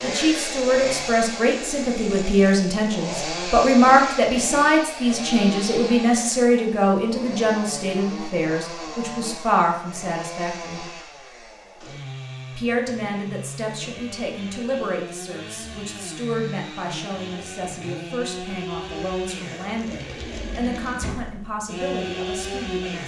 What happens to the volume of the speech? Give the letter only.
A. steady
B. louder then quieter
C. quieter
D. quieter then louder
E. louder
C.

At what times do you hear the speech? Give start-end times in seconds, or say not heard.
0.0-10.8, 12.6-23.0.